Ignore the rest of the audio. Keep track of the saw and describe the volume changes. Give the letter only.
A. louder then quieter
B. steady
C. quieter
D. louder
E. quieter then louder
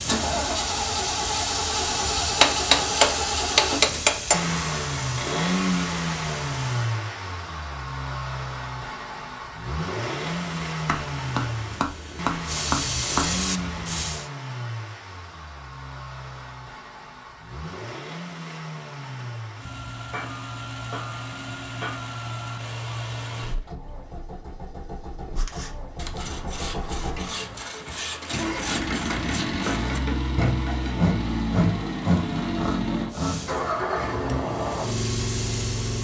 D.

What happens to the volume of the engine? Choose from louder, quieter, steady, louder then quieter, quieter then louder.
quieter then louder.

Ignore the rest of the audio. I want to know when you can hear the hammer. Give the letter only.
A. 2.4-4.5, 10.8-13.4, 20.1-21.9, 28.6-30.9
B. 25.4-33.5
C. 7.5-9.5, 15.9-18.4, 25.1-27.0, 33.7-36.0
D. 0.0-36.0
A.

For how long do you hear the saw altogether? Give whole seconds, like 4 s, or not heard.
8 s.